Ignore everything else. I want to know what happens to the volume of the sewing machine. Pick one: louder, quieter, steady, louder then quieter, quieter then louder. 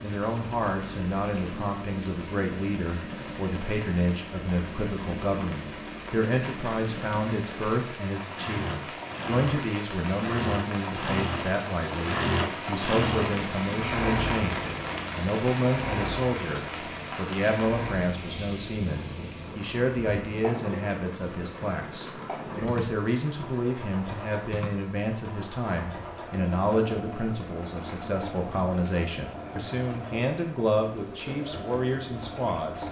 louder then quieter.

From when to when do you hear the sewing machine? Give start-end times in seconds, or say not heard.
0.0-32.8.